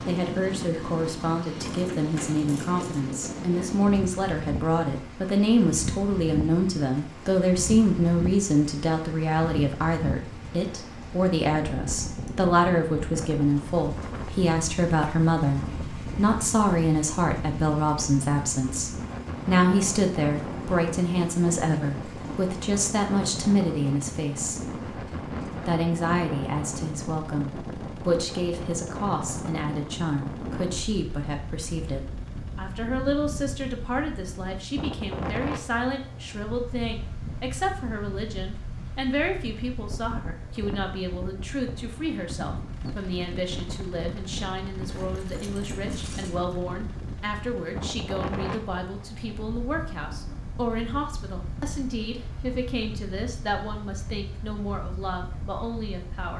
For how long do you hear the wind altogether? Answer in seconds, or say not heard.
56 s.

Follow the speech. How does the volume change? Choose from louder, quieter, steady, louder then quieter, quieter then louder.
quieter.